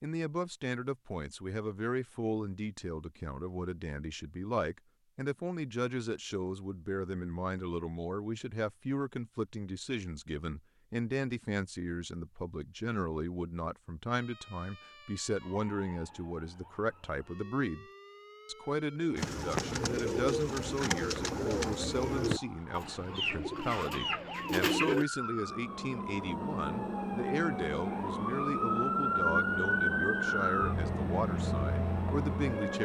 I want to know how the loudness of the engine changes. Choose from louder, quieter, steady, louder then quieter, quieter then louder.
steady.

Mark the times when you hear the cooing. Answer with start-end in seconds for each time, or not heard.
19.1-25.1.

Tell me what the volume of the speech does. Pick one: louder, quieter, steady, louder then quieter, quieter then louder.
steady.